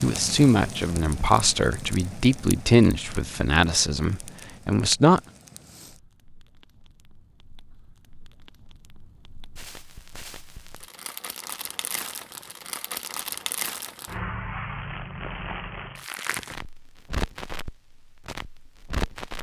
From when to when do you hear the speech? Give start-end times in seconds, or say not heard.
0.0-5.2.